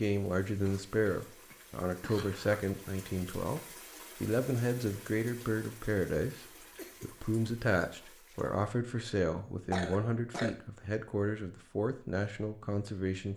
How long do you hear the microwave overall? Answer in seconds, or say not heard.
not heard.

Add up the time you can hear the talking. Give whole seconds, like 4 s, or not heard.
13 s.